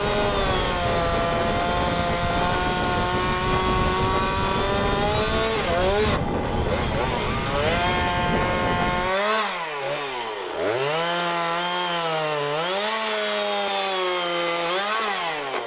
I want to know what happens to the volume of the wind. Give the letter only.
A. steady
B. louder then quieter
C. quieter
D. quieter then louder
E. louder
A.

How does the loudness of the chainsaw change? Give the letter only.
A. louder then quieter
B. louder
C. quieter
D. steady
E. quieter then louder
D.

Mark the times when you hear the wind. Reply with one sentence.
The wind can be heard from 0.0 to 9.1 s.